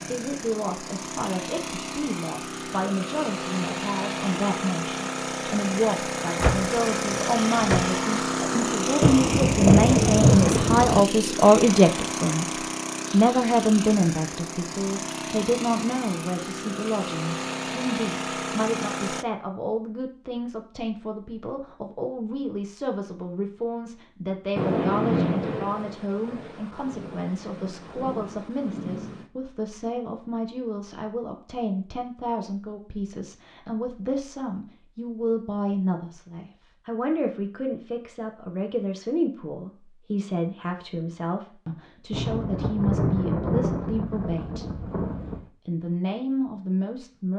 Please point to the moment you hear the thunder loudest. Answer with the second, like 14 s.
10 s.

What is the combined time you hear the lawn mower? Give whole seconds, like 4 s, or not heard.
19 s.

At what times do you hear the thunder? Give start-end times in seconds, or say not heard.
9.0-11.1, 24.6-29.2, 42.1-45.5.